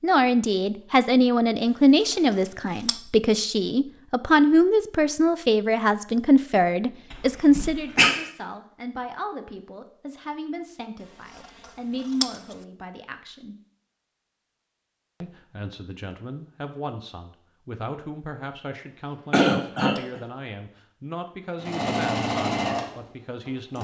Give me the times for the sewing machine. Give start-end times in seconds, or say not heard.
21.6-23.7.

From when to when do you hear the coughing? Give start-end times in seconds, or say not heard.
7.1-8.1, 19.3-20.2.